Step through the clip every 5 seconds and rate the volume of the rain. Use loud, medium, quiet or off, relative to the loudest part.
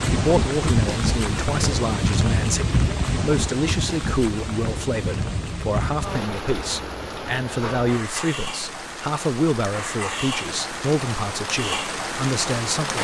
loud, medium, loud.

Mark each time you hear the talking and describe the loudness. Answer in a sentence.
You can hear the talking from 0.1 to 13.0 s, at a steady volume.